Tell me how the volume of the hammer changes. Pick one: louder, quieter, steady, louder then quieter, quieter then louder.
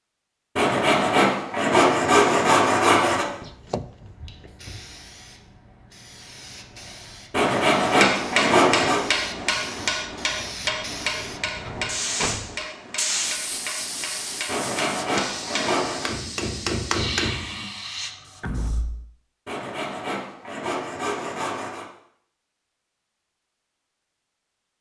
quieter then louder.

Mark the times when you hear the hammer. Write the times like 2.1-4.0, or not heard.
8.0-17.6.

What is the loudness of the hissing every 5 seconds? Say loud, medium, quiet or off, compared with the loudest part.
quiet, medium, loud, loud, off.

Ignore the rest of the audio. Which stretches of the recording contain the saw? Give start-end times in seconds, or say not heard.
0.6-3.2, 7.3-9.0, 14.4-16.1, 19.4-21.9.